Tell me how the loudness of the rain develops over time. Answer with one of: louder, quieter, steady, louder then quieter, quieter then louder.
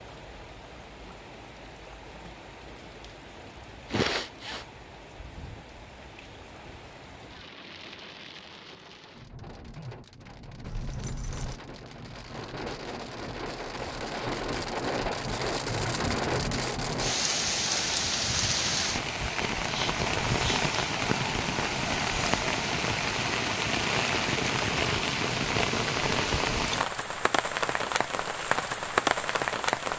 louder.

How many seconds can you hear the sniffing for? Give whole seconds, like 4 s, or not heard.
2 s.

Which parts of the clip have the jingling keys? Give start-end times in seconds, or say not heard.
10.6-11.6.